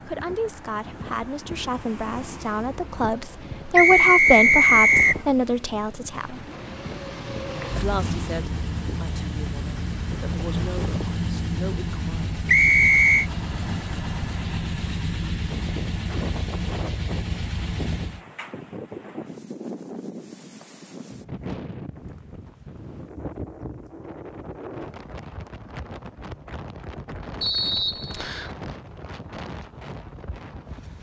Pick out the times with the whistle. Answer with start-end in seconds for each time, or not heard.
3.8-5.2, 12.4-13.2, 27.4-28.6.